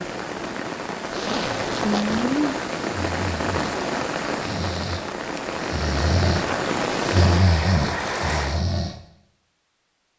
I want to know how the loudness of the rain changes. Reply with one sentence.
The loudness of the rain stays about the same.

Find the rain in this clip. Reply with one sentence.
The rain can be heard from 0.0 to 8.7 s.